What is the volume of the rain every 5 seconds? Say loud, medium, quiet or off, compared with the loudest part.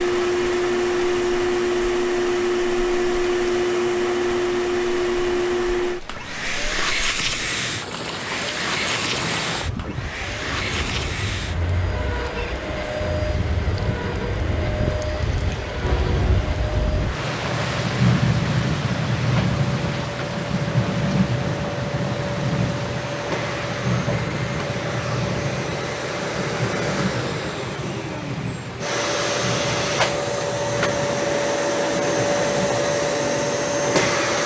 quiet, medium, medium, loud, loud, medium, medium.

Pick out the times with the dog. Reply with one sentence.
The dog can't be heard in this clip.